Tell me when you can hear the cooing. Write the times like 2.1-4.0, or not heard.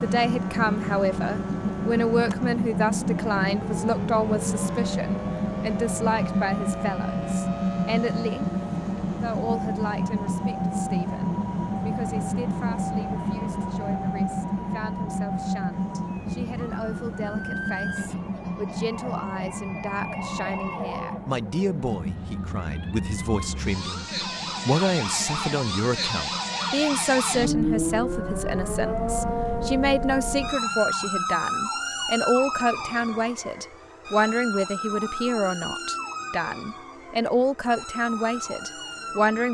not heard.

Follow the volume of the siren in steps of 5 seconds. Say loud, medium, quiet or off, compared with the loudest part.
medium, medium, medium, medium, medium, loud, loud, medium.